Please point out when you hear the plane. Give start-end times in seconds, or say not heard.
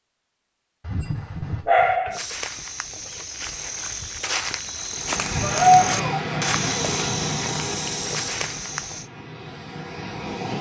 4.9-10.5.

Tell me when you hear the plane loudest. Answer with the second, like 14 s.
6 s.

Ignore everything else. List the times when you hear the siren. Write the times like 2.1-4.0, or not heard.
not heard.